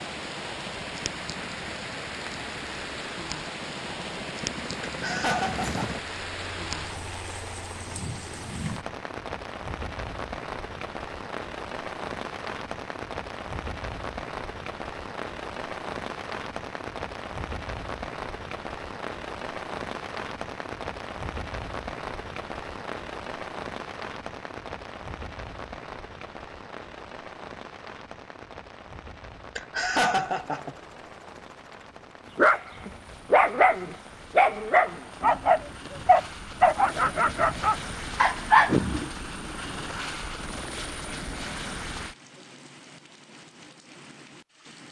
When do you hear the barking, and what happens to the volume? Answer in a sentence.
The barking can be heard from 32.4 to 39.1 s, at a steady volume.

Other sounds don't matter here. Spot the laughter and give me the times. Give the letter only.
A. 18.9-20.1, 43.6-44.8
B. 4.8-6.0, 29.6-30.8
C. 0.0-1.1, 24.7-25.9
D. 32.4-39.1
B.